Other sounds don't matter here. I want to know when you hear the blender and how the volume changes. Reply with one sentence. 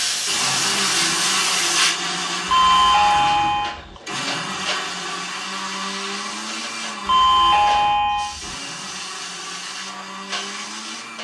The blender can be heard from 0.2 to 11.1 s, getting quieter.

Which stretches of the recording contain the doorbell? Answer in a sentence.
The doorbell can be heard from 2.5 to 4.0 s and from 7.0 to 8.6 s.